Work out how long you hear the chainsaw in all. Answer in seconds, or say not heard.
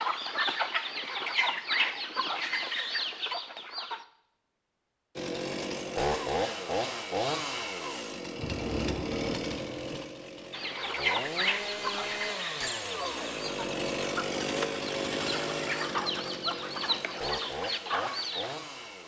14 s.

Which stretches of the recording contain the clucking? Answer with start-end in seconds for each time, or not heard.
0.0-4.0, 10.5-18.6.